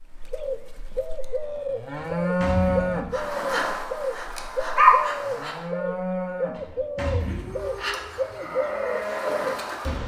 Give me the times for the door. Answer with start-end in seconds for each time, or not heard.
1.9-3.1, 6.5-7.8.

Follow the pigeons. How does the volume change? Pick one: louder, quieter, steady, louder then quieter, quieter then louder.
steady.